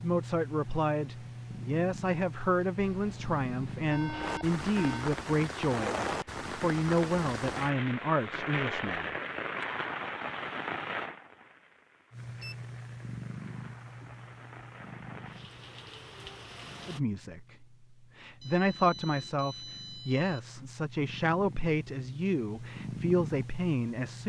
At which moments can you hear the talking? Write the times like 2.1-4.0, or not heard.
0.0-9.1, 16.9-24.2.